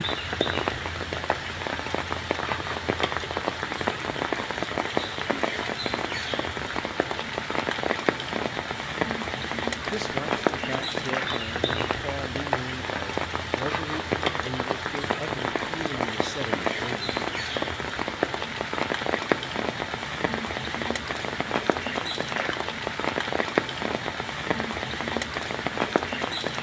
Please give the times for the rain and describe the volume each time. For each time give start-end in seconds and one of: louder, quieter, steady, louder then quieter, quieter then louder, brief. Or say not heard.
0.0-26.5 steady.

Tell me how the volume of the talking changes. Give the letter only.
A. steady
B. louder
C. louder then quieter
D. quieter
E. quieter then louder
A.